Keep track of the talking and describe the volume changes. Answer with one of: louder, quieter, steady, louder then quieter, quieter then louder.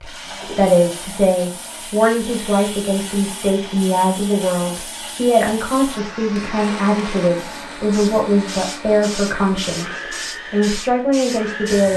steady.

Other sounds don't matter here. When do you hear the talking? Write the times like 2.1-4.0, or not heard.
0.0-11.9.